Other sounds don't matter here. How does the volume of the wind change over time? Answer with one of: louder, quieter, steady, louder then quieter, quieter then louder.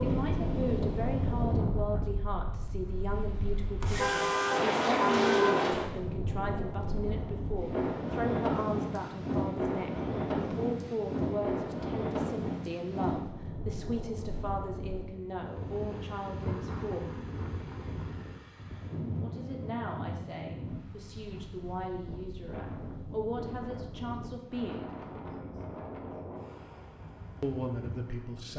quieter.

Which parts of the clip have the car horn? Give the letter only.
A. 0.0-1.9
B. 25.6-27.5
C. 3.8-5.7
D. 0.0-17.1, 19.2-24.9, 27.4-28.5
C.